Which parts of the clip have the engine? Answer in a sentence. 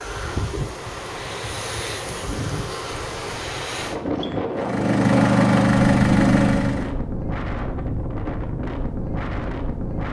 You can hear the engine from 4.5 to 7.0 s.